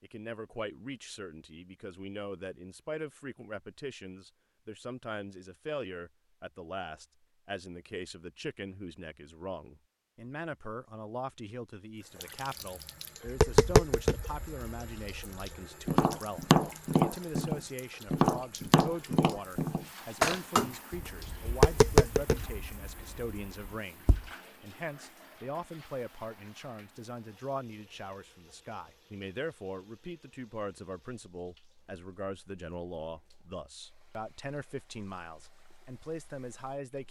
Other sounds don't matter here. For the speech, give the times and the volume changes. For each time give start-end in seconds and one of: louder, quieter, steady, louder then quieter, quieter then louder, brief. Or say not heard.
0.0-37.0 steady.